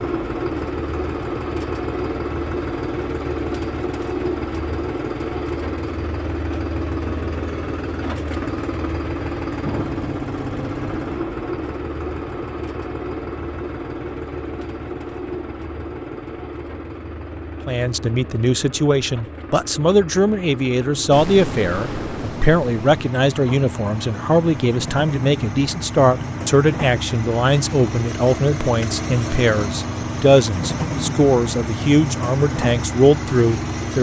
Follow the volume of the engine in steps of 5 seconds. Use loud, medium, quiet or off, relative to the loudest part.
loud, loud, loud, medium, medium, loud, loud.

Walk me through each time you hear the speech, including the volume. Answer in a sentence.
You can hear the speech from 17.6 to 33.9 s, at a steady volume.